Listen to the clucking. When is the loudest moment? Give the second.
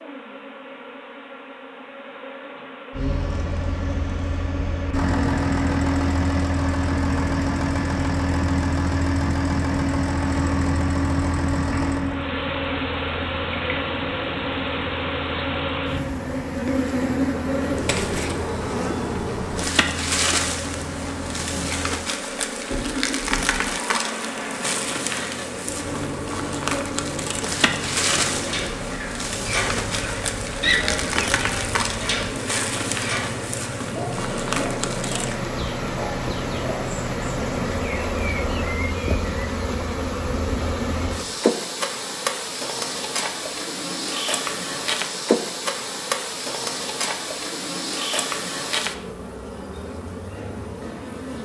31 s.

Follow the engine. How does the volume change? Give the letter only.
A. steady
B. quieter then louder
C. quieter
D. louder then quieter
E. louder
C.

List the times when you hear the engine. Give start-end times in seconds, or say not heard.
2.9-38.8.